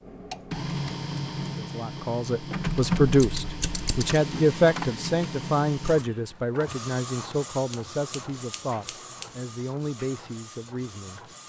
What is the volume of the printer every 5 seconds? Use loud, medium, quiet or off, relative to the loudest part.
loud, medium, quiet.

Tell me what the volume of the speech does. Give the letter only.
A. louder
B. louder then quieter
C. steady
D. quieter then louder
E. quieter
E.